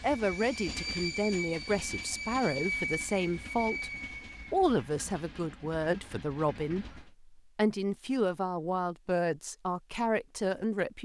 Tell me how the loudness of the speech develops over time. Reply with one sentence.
The volume of the speech stays about the same.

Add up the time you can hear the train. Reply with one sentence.
The train can be heard for 7 seconds in total.